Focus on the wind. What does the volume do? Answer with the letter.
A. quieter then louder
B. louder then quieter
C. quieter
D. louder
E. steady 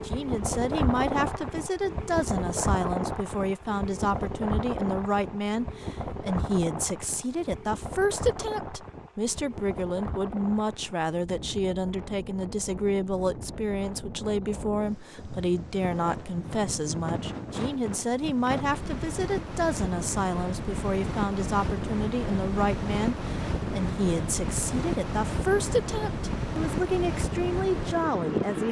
A.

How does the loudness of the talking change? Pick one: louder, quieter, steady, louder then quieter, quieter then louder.
steady.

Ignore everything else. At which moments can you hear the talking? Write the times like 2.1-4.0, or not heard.
0.1-28.6.